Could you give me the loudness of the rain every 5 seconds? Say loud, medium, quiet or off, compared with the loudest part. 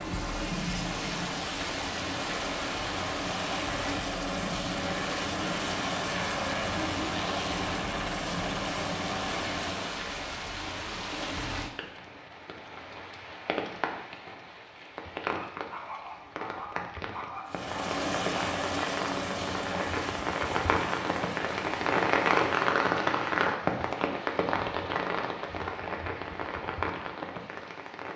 medium, medium, medium, medium, loud, medium.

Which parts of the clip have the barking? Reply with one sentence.
You can hear the barking from 15.3 to 17.7 s.